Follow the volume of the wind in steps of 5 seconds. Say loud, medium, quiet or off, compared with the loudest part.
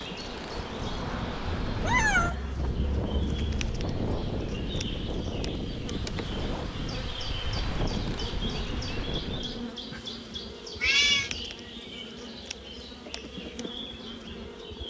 loud, loud, off.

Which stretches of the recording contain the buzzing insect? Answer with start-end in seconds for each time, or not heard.
0.0-14.8.